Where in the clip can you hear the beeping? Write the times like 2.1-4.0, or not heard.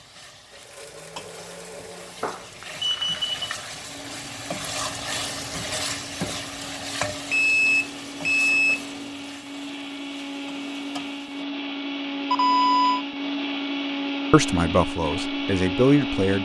2.2-3.5, 7.3-9.1, 12.3-13.1.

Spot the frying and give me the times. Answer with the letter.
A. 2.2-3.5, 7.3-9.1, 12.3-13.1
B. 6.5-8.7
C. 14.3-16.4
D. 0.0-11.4
D.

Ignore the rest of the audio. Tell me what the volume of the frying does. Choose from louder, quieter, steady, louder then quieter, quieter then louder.
louder then quieter.